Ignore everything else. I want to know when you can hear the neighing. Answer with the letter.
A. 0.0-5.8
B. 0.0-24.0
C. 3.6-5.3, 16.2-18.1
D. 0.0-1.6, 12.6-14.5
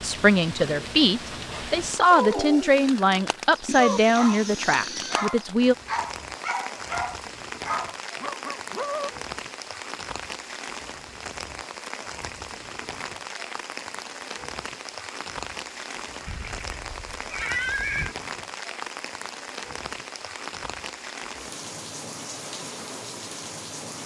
C.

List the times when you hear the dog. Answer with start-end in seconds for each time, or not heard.
0.6-9.1.